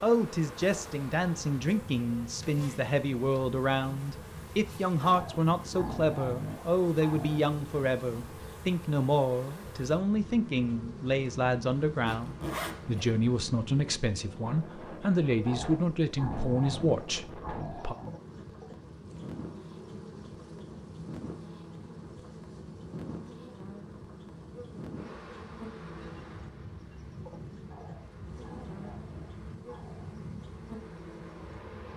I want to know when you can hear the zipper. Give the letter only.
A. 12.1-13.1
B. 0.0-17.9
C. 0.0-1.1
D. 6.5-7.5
A.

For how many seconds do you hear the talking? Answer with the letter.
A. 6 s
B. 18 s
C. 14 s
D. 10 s
B.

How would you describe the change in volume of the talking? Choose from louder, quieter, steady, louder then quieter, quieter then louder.
steady.